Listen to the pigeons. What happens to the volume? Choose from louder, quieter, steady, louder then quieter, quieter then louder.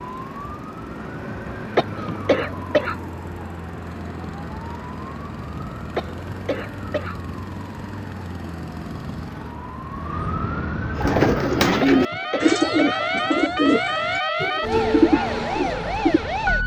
quieter then louder.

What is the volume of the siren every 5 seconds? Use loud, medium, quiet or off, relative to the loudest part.
medium, medium, loud, loud.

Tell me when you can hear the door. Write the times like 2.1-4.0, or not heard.
not heard.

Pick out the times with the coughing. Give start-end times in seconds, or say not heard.
1.8-3.1, 6.0-7.3, 11.8-13.0.